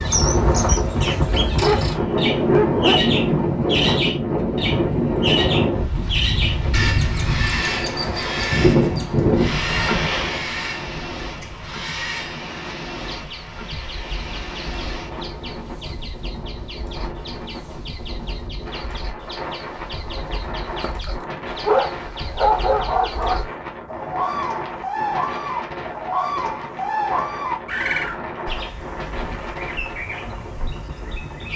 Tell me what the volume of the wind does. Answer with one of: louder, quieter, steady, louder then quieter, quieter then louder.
quieter.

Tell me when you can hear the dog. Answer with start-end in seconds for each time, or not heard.
1.6-3.1, 20.8-23.4.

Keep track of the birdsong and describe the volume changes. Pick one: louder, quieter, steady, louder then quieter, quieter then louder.
quieter then louder.